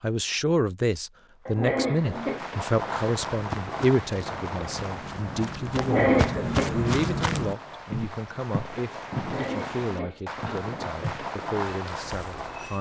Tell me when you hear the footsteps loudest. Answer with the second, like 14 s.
7 s.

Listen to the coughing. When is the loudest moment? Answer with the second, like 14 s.
6 s.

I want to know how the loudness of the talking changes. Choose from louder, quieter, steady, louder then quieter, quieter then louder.
quieter.